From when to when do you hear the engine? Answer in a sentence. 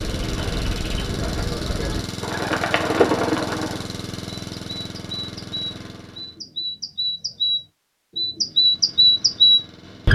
You can hear the engine from 0.0 to 6.4 s and from 8.3 to 10.0 s.